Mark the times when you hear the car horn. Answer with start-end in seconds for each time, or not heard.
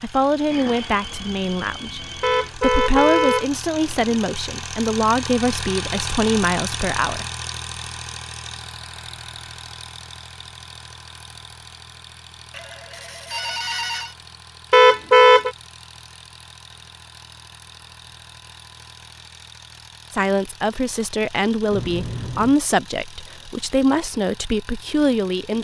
2.2-4.2, 14.7-15.5.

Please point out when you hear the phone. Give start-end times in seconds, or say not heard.
0.5-2.5, 12.5-14.2, 21.7-22.6.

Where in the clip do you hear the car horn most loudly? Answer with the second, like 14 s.
15 s.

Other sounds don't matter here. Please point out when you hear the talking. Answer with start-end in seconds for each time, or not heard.
0.0-7.2, 20.1-25.5.